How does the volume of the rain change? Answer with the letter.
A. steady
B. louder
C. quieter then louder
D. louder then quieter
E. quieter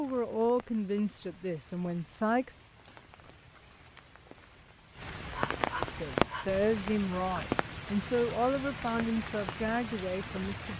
D.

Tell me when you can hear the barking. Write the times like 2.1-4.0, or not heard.
5.3-6.5.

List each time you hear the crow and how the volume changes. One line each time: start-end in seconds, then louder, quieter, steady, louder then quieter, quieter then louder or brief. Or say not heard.
not heard.